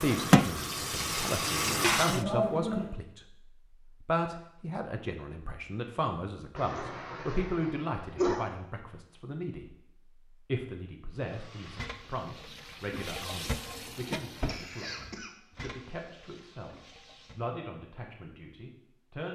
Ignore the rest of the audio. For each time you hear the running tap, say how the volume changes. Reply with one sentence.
You can hear the running tap briefly from 0.0 to 2.2 s; and from 11.2 to 17.4 s, getting louder then quieter.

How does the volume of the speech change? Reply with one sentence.
The loudness of the speech goes down.